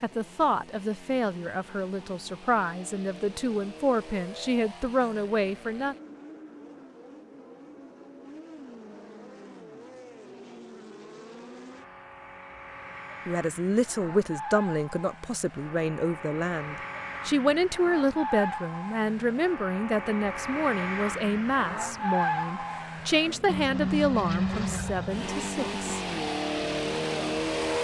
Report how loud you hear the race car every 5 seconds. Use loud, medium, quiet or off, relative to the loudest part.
quiet, quiet, quiet, medium, loud, loud.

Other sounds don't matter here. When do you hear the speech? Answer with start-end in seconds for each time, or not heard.
0.0-6.0, 13.2-26.0.